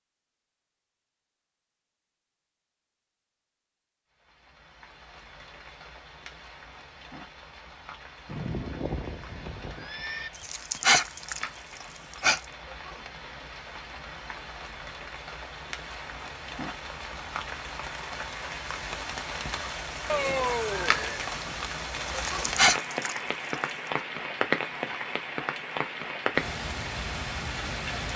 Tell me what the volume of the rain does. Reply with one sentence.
The volume of the rain goes up.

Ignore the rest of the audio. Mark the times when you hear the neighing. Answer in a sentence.
The neighing can be heard from 8.2 to 10.3 s and from 20.1 to 21.3 s.